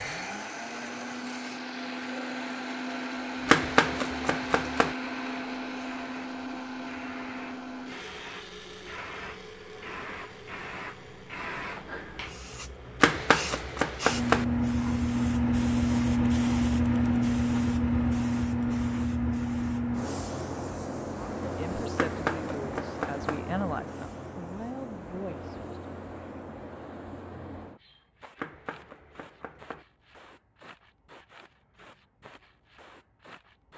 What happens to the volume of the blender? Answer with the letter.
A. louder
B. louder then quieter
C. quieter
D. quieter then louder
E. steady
C.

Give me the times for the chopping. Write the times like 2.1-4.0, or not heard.
3.5-5.0, 13.0-14.4, 21.9-23.4, 28.4-29.9.